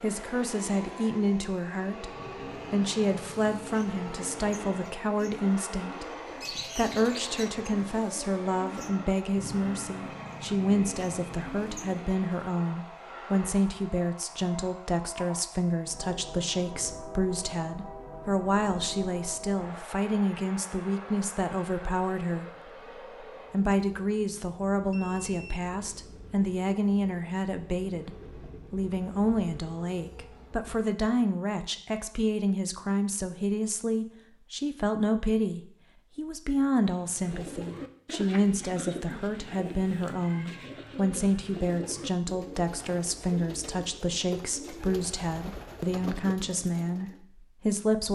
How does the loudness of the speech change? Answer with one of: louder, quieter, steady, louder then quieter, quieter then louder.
steady.